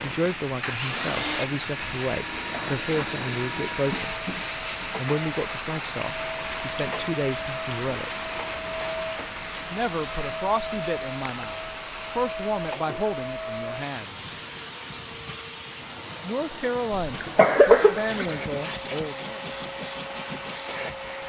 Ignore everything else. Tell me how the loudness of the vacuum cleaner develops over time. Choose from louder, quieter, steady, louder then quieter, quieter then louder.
steady.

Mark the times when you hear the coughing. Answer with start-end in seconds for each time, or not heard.
2.5-3.3, 16.9-18.2.